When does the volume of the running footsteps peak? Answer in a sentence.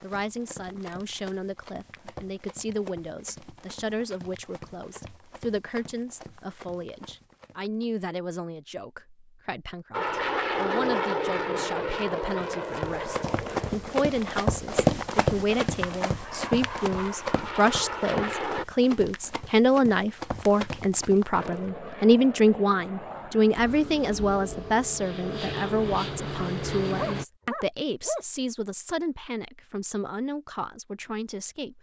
The loudest moment of the running footsteps is at 15 seconds.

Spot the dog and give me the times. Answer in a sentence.
The dog can be heard from 26.9 to 28.2 s.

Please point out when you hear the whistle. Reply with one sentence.
The whistle can't be heard in this clip.